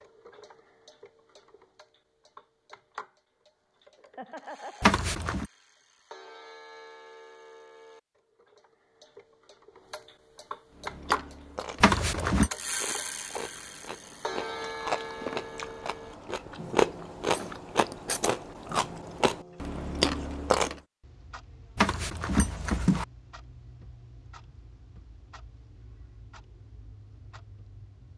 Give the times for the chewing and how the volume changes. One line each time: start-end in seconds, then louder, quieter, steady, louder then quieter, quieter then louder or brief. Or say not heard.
10.8-20.8 louder.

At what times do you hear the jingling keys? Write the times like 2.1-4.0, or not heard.
4.8-5.5, 11.8-12.5, 21.8-23.1.